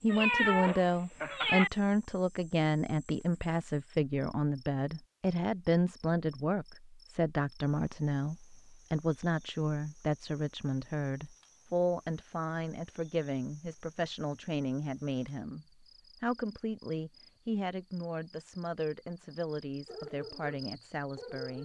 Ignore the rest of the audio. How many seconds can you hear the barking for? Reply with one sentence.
The barking can be heard for 2 seconds in total.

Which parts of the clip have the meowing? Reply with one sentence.
You can hear the meowing from 0.1 to 1.7 s.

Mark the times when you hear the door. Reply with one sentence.
The door can't be heard in this clip.